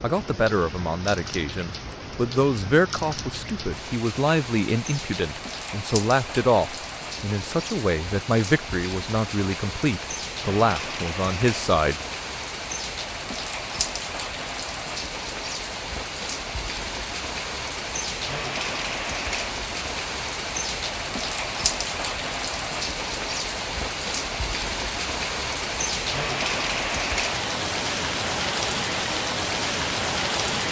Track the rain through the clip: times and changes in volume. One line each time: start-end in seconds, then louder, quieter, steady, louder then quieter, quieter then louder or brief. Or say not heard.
0.0-30.6 louder.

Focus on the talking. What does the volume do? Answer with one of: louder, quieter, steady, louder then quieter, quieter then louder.
steady.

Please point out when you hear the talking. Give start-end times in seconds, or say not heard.
0.0-11.9.